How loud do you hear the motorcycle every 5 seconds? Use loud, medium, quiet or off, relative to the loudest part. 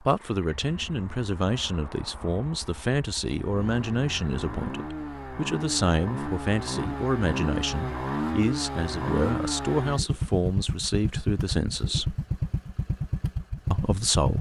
medium, loud, loud.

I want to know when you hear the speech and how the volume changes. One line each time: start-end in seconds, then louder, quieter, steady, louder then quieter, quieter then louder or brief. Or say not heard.
0.0-12.2 steady
13.7-14.3 brief.